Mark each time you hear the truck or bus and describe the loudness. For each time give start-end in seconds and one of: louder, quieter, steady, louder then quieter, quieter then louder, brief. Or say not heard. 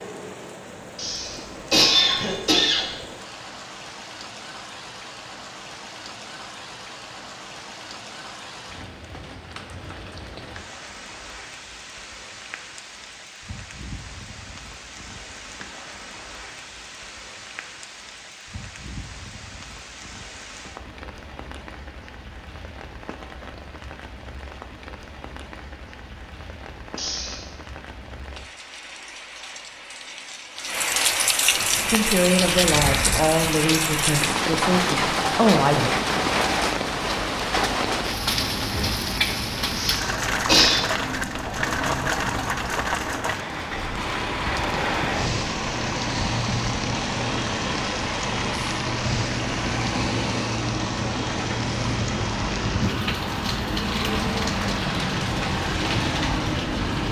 31.5-57.0 louder.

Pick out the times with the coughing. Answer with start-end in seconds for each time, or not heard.
0.9-2.9, 26.9-27.5, 39.8-40.8.